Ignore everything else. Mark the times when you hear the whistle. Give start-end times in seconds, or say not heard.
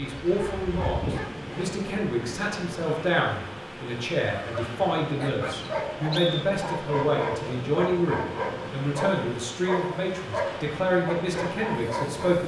5.5-6.5.